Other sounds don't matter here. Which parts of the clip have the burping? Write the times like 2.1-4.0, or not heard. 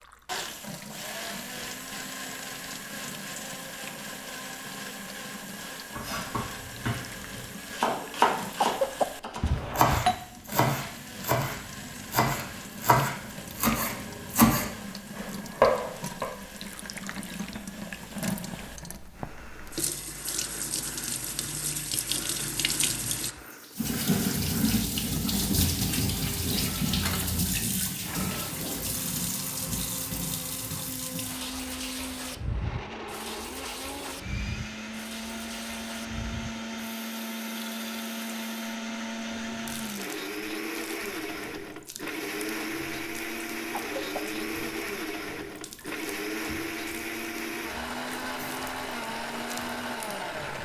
not heard.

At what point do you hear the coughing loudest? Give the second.
9 s.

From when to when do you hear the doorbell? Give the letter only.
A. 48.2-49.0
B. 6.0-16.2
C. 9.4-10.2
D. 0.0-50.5
C.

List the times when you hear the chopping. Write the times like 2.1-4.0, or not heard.
6.0-16.2.